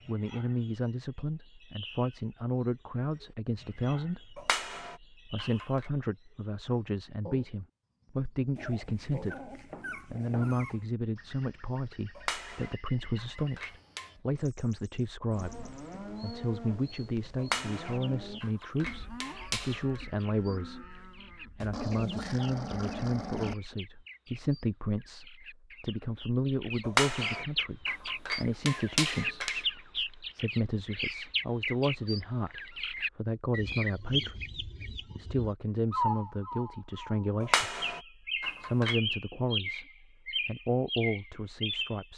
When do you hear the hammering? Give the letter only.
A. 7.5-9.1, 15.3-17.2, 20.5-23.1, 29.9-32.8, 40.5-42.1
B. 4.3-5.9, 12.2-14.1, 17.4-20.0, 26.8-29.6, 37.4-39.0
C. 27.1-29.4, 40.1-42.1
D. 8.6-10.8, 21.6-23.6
B.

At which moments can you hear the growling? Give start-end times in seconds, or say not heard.
8.6-10.8, 21.6-23.6.